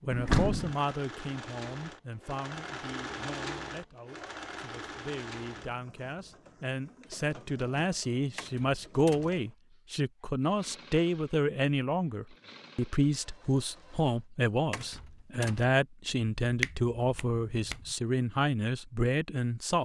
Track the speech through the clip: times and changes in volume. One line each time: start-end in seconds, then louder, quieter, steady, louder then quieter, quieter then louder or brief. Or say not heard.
0.0-19.8 louder.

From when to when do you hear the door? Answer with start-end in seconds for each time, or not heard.
0.1-0.8, 8.3-9.3, 14.7-15.7.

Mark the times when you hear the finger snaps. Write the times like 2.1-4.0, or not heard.
16.4-17.9.